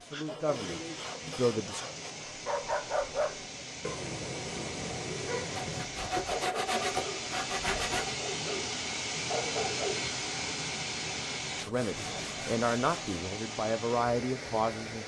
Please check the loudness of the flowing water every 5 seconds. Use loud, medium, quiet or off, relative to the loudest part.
medium, loud, loud.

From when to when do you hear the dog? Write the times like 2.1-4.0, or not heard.
2.2-10.1.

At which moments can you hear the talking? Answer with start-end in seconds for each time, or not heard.
0.0-1.9, 11.7-15.0.